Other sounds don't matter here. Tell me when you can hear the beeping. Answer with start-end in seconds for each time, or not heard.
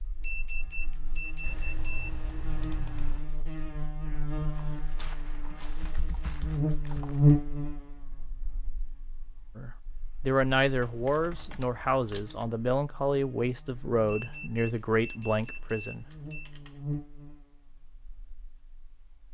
0.2-2.2, 14.1-16.5.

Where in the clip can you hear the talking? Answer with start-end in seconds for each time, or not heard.
9.6-16.1.